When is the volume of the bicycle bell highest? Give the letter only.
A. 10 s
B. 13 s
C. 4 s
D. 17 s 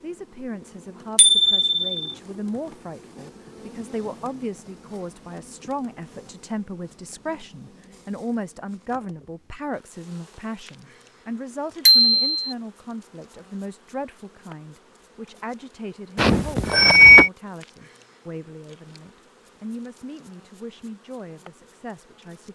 D.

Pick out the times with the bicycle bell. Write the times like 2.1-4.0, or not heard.
1.1-1.9, 11.8-12.5, 16.1-17.3.